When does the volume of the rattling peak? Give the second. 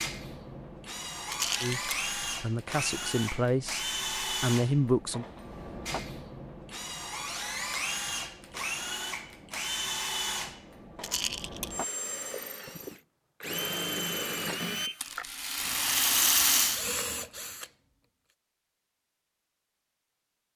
16 s.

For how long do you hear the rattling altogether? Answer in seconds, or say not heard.
3 s.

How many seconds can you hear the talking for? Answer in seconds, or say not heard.
4 s.